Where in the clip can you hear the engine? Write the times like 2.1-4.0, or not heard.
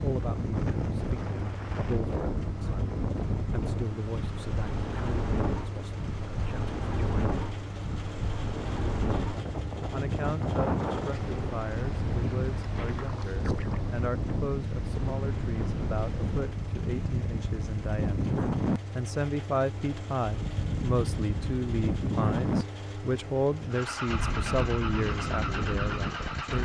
0.0-26.6.